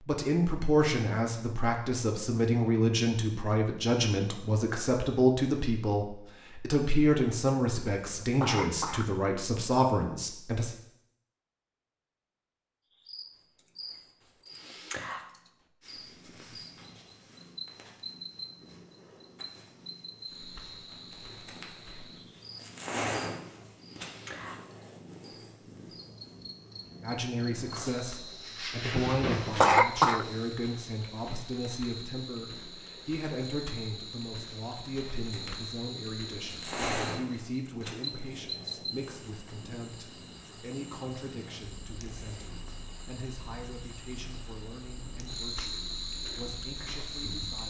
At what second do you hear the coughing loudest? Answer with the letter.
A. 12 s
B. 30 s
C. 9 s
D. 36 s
B.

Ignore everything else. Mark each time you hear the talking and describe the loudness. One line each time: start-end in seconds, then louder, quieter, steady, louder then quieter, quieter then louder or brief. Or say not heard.
0.1-10.7 steady
27.0-47.6 quieter.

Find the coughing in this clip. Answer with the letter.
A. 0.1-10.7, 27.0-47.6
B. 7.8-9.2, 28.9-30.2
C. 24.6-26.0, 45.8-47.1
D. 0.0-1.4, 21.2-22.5
B.